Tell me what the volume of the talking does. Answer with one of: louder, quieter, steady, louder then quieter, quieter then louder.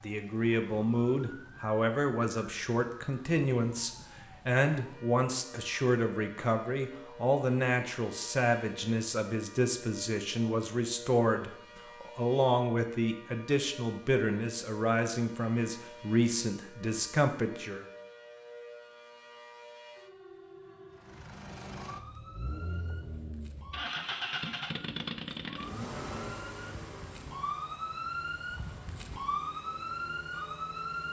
steady.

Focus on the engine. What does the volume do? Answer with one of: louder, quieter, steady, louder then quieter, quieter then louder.
louder then quieter.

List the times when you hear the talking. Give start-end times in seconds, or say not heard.
0.0-17.9.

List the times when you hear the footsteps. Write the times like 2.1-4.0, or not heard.
not heard.